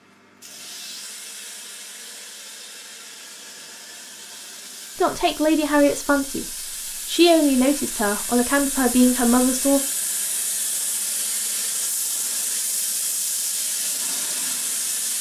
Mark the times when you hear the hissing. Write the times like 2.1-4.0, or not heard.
0.0-15.1.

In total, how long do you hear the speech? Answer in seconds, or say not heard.
4 s.